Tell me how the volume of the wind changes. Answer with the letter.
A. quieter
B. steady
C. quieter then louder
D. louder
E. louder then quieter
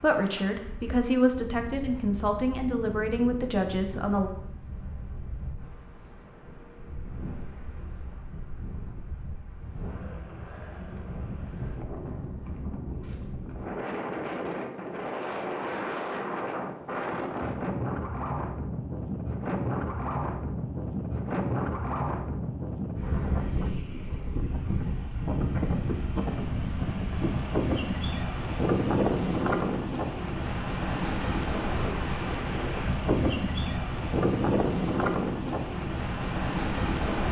D.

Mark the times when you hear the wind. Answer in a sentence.
The wind can be heard from 0.0 to 37.2 s.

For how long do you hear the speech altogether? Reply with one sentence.
The speech can be heard for 4 seconds in total.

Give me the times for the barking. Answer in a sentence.
You can't hear the barking here.